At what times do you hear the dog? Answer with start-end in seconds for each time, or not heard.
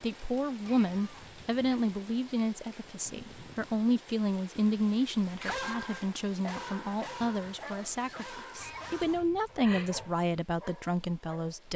5.2-11.7.